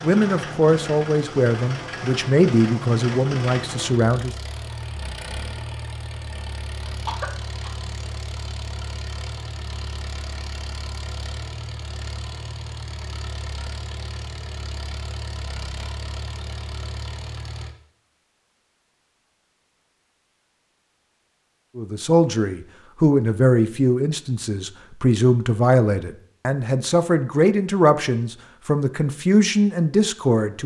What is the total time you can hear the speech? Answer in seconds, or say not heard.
13 s.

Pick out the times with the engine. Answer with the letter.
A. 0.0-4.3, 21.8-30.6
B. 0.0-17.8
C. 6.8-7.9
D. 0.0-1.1
B.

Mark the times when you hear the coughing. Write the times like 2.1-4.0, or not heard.
6.8-7.9.